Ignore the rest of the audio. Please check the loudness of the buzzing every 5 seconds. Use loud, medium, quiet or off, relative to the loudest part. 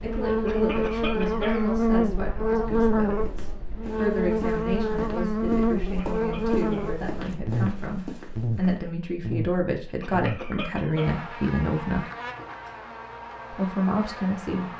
loud, loud, quiet.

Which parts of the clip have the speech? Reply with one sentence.
The speech can be heard from 0.0 to 12.1 s and from 13.5 to 14.7 s.